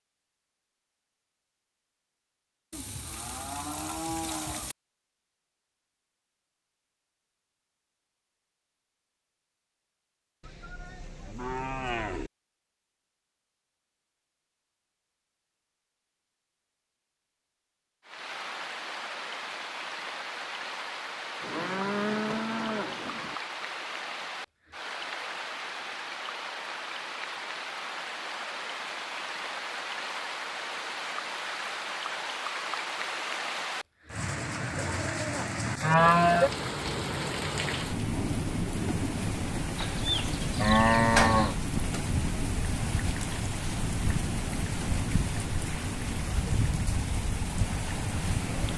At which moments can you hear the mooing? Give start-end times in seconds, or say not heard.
2.7-4.8, 10.4-12.3, 21.4-23.4, 34.8-36.5, 39.8-41.5.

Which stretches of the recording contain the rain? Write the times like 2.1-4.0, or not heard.
18.1-48.7.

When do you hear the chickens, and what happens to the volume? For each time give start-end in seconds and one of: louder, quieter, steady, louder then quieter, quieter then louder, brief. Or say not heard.
not heard.